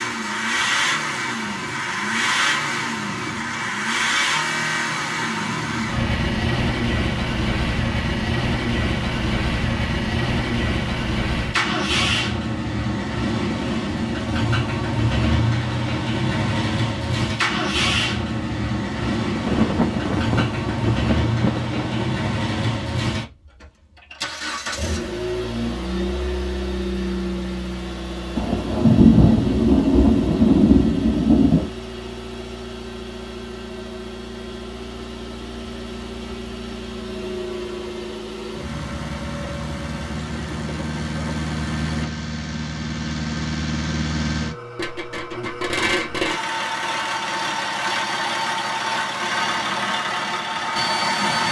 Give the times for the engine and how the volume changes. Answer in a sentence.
The engine can be heard from 0.0 to 51.4 s, getting quieter then louder.